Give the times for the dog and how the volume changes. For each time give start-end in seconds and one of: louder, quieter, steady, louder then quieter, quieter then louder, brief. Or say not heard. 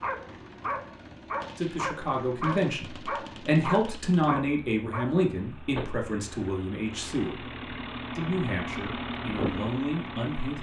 0.0-5.2 steady.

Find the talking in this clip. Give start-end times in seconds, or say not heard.
1.6-7.5, 8.2-10.5.